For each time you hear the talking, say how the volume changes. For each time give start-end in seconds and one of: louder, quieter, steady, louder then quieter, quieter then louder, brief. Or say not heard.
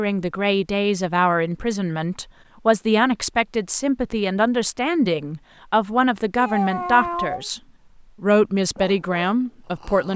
0.0-7.6 steady
8.2-10.1 brief.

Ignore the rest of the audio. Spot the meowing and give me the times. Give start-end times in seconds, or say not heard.
6.3-7.5.